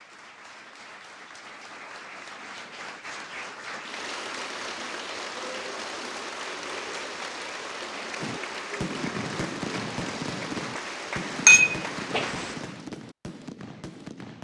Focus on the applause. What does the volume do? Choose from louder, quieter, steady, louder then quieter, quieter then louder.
louder.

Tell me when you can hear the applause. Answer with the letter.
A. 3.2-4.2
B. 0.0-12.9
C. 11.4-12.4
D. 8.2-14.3
B.